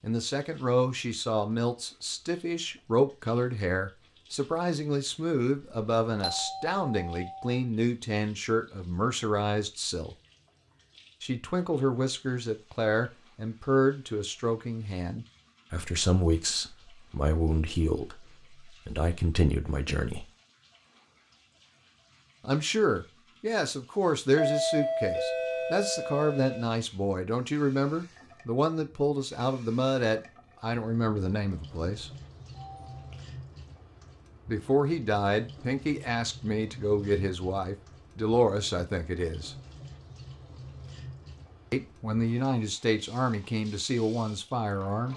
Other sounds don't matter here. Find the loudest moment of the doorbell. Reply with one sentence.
The volume of the doorbell peaks at 25 seconds.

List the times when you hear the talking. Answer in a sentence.
You can hear the talking from 0.0 to 10.2 s, from 11.2 to 20.2 s, from 22.4 to 32.1 s, from 34.5 to 39.5 s and from 41.7 to 45.1 s.